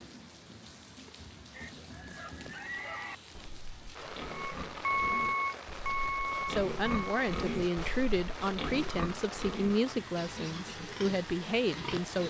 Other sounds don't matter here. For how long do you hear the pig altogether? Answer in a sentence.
The pig can be heard for 11 seconds in total.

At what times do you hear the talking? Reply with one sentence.
The talking can be heard from 6.5 to 12.2 s.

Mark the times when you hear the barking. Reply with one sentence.
You can't hear the barking here.